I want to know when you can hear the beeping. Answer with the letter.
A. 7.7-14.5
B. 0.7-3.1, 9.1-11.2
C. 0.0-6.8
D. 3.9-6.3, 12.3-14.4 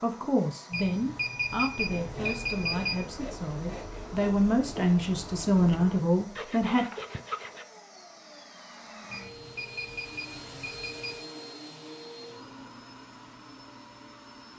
B.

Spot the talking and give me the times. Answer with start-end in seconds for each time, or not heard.
0.0-6.8.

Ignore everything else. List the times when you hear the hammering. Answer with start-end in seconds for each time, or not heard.
not heard.